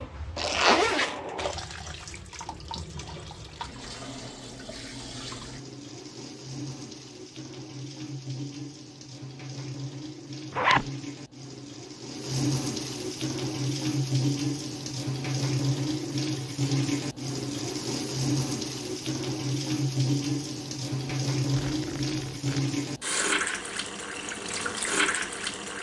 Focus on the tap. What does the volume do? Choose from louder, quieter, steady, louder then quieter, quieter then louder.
louder.